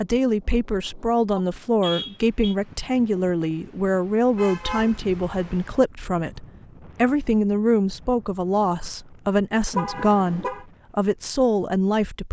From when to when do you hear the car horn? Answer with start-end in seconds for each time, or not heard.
1.4-2.5, 4.3-5.5, 9.7-10.7.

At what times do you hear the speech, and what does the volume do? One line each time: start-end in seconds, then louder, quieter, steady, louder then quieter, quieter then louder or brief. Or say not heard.
0.0-12.2 steady.